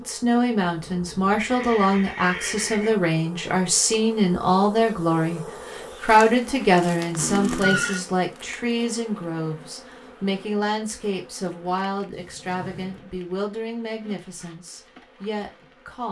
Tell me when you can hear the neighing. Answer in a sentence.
The neighing can be heard from 0.3 to 3.0 s, from 7.2 to 8.0 s and from 12.1 to 12.9 s.